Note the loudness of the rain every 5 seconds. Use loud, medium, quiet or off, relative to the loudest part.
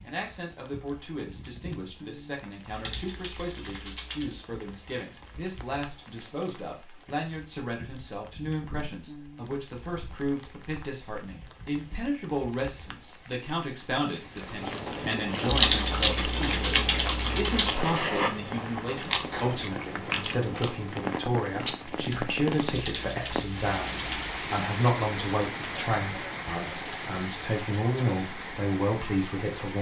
quiet, quiet, quiet, medium, loud, loud.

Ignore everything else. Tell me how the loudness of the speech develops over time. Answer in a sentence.
The loudness of the speech goes up.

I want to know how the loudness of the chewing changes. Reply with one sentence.
The loudness of the chewing goes down.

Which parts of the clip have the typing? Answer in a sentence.
The typing can be heard from 2.7 to 4.3 s, from 15.5 to 17.6 s and from 22.7 to 24.3 s.